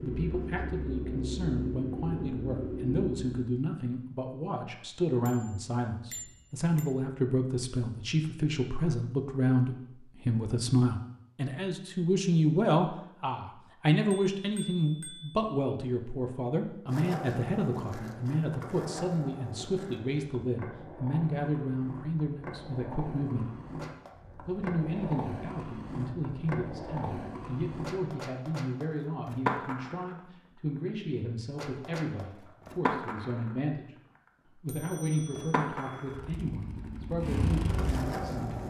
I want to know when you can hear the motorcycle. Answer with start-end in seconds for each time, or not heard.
0.0-3.5, 36.1-38.6.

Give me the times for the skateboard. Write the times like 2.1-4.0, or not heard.
16.9-38.6.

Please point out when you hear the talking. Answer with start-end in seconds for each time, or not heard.
0.0-23.4, 24.4-33.9, 34.6-38.6.